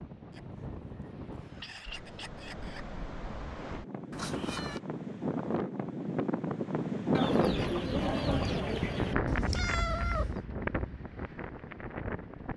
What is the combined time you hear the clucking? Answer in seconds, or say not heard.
5 s.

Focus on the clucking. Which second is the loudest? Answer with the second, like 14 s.
8 s.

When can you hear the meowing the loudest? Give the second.
10 s.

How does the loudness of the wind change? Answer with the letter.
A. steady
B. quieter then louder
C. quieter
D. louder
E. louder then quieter
E.